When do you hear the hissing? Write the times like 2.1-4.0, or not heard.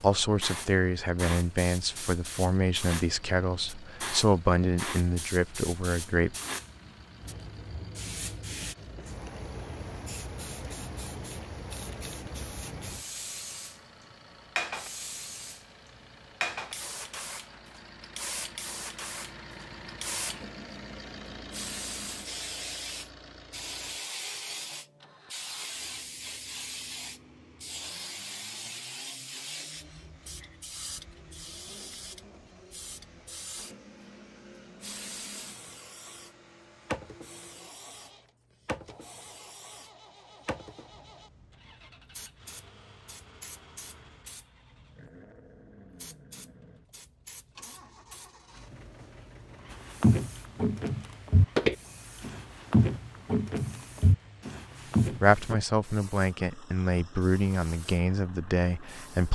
0.0-59.2.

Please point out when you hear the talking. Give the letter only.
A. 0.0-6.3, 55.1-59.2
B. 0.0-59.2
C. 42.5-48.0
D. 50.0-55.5
A.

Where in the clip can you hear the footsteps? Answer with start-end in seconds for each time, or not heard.
50.0-55.5.